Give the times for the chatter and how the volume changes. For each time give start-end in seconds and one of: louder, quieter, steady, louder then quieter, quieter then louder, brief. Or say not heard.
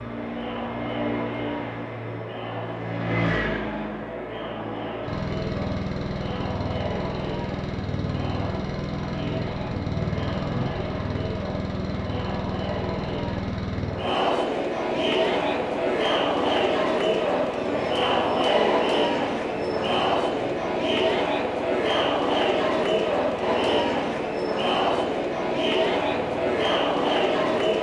0.0-27.7 louder.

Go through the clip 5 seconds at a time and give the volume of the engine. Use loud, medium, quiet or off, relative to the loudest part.
loud, loud, loud, quiet, quiet, quiet.